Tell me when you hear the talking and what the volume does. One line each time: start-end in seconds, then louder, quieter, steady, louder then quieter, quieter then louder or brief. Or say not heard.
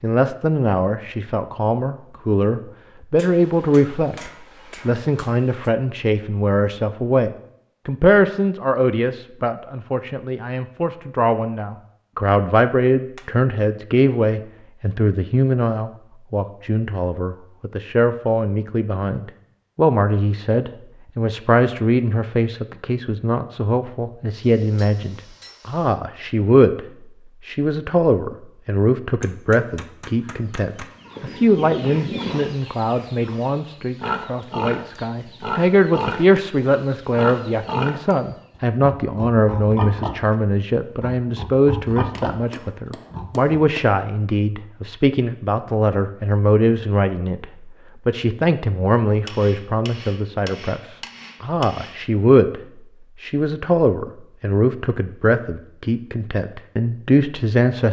0.0-57.8 steady.